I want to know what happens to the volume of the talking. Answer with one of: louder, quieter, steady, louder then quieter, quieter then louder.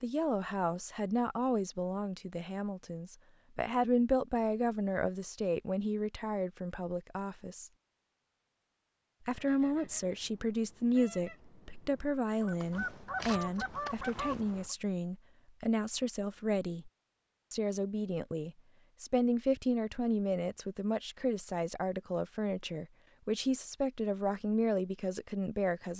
steady.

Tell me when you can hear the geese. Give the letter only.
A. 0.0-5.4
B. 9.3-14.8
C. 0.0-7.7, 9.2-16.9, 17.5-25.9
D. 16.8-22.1
B.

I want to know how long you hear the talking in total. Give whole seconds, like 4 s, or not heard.
24 s.